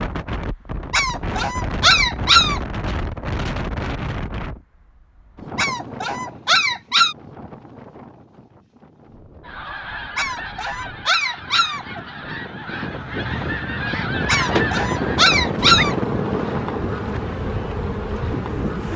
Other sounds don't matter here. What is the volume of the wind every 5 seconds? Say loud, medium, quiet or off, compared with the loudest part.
loud, quiet, medium, loud.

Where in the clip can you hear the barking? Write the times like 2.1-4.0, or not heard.
0.9-2.6, 5.5-7.2, 10.2-12.0, 14.2-15.9.